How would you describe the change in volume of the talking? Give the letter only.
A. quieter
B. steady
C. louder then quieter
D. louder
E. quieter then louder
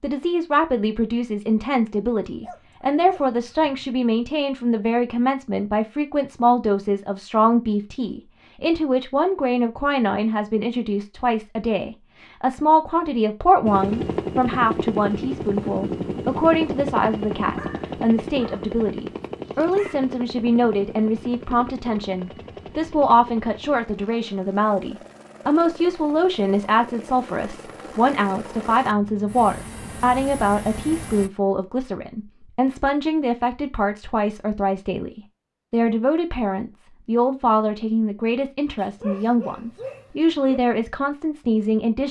B.